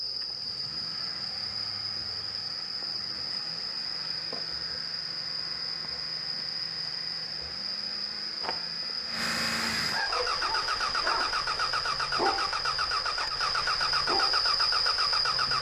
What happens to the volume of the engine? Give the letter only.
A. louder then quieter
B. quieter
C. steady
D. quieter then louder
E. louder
E.